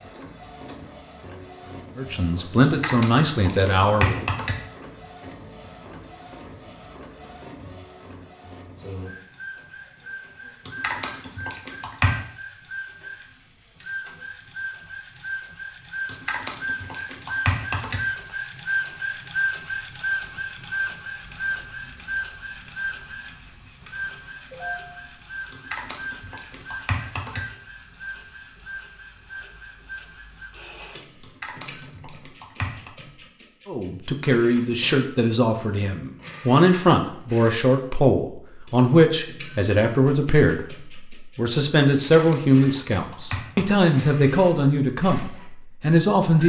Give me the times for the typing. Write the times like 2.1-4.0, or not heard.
2.6-4.5, 10.7-12.2, 16.1-18.0, 25.5-27.4, 31.2-32.9, 42.1-43.8.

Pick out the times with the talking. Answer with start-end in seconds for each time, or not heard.
1.9-4.2, 33.6-46.4.